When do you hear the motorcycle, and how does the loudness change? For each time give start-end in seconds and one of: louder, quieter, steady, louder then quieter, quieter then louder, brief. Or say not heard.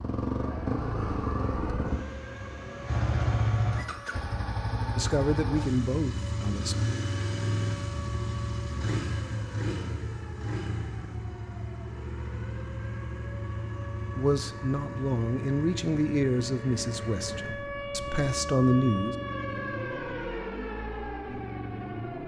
0.0-22.2 quieter.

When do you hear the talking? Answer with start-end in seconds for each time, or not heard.
5.0-6.8, 14.2-19.1.